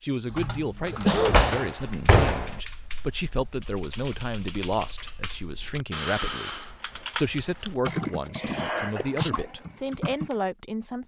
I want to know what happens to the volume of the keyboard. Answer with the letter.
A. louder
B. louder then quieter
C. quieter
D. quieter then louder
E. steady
D.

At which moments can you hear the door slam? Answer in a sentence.
You can hear the door slam from 0.9 to 2.5 s.